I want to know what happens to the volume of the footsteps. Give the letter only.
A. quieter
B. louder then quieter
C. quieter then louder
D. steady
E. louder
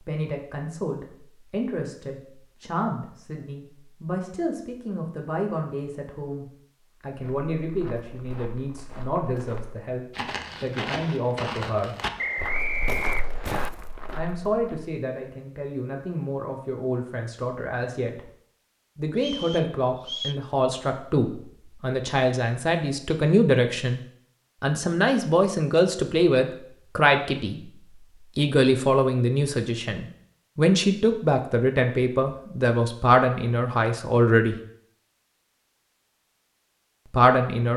E.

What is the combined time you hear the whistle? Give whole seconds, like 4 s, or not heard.
3 s.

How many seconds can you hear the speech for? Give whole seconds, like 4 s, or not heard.
31 s.